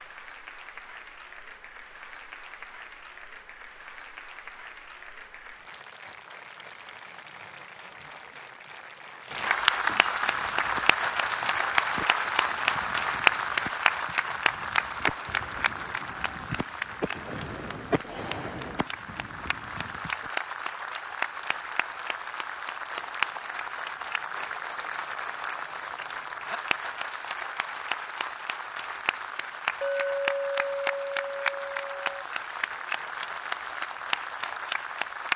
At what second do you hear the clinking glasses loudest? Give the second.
30 s.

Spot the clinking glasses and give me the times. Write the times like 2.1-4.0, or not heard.
9.3-11.1, 29.8-32.2.